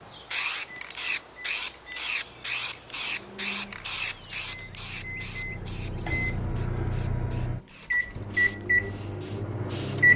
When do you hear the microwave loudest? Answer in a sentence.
The volume of the microwave peaks at 10 seconds.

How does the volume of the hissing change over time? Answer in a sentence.
The volume of the hissing goes down.